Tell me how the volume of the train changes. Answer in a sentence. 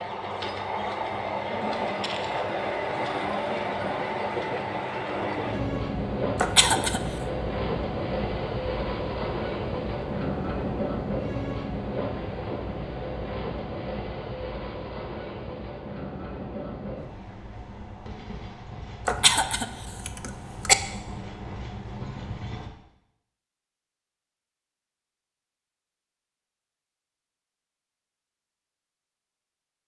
The volume of the train goes down.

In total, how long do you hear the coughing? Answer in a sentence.
The coughing can be heard for 2 seconds in total.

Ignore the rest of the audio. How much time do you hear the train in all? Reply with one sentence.
You can hear the train for 23 seconds altogether.